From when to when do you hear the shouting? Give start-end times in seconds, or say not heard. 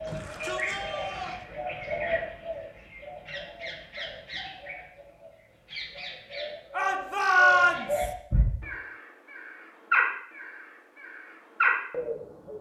0.1-1.4, 6.7-8.1.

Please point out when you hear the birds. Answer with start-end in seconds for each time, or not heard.
0.0-4.8, 5.7-12.5.